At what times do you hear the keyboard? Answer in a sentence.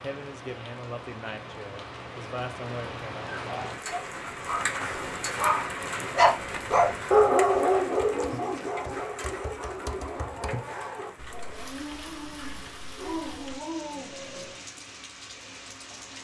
The keyboard can be heard from 8.2 to 13.6 s.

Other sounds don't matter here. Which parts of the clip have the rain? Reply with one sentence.
You can hear the rain from 0.0 to 16.2 s.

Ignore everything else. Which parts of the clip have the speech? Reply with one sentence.
The speech can be heard from 0.0 to 3.2 s.